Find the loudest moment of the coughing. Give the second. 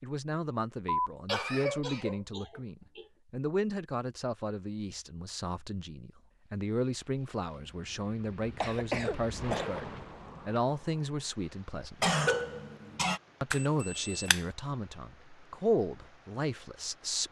12 s.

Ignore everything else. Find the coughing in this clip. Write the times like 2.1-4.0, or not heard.
0.8-3.0, 8.6-9.7, 12.0-13.2.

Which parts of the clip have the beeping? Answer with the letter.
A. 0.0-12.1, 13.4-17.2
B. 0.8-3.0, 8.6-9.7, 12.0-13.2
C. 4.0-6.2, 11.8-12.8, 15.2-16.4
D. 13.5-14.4
D.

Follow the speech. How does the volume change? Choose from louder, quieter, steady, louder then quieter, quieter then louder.
steady.